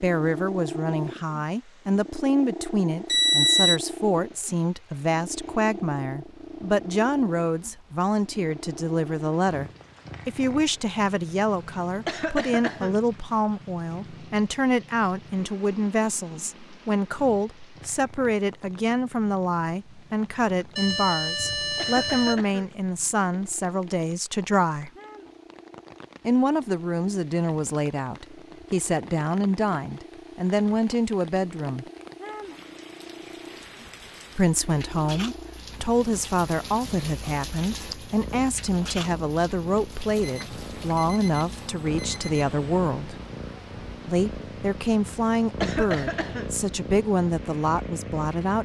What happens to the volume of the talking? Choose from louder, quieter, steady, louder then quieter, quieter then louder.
steady.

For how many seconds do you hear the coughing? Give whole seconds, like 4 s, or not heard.
3 s.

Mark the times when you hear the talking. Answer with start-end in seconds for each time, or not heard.
0.0-24.9, 26.2-31.9, 34.4-43.1, 44.0-48.6.